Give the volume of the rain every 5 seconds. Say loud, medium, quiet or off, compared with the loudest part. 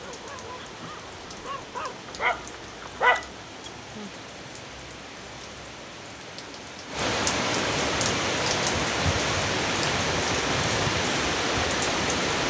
quiet, loud, loud.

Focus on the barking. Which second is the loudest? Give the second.
3 s.